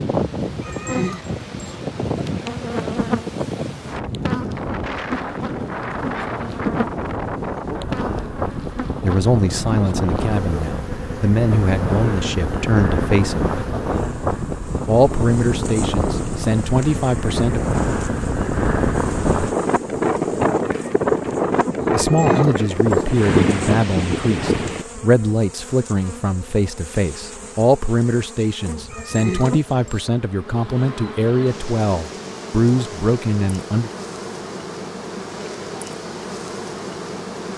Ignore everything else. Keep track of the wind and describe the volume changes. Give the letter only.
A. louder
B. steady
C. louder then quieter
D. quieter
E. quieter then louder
A.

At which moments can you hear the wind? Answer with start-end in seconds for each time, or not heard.
0.0-24.9.